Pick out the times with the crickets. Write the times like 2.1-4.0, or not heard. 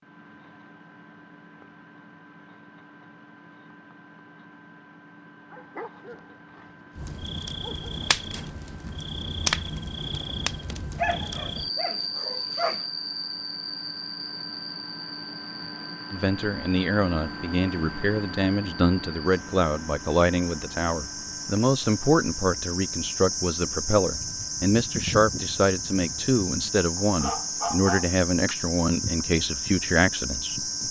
7.0-30.8.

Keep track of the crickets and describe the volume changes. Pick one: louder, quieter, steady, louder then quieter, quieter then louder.
quieter then louder.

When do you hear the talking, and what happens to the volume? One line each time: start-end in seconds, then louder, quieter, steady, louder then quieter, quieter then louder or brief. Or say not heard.
16.1-30.8 steady.